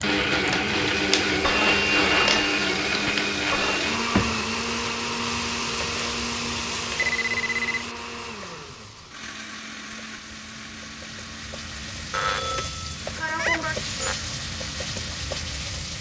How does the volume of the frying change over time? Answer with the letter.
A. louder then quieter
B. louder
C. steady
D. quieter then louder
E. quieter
D.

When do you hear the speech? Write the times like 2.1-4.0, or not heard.
not heard.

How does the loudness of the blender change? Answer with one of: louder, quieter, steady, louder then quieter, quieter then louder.
quieter.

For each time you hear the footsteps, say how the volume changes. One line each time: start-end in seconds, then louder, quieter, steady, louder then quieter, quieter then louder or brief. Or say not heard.
not heard.